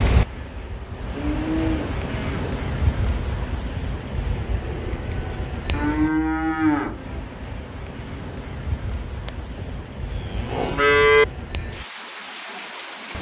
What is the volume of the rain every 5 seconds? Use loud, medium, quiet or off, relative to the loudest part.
loud, medium, medium.